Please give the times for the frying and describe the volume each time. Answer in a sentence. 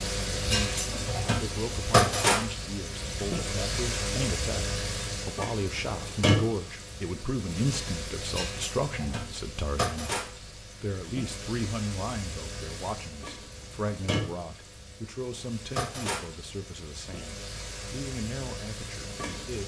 The frying can be heard from 0.0 to 19.6 s, getting quieter.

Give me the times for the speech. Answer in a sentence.
You can hear the speech from 0.1 to 19.6 s.